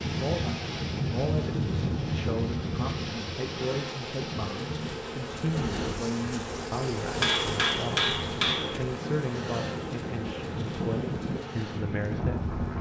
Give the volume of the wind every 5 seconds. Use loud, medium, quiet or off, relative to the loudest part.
loud, medium, loud.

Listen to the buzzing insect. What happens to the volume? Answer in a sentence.
The loudness of the buzzing insect goes up, then down.